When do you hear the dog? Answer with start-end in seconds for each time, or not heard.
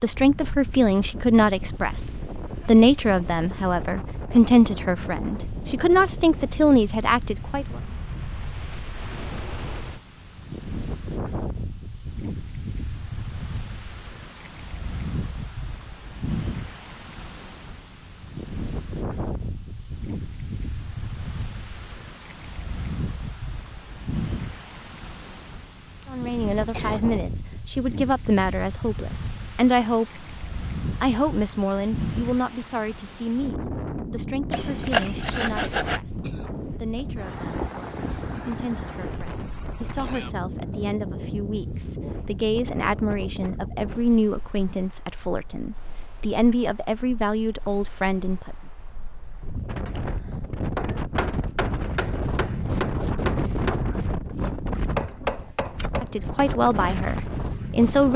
not heard.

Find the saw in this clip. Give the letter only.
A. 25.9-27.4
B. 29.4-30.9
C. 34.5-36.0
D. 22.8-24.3
C.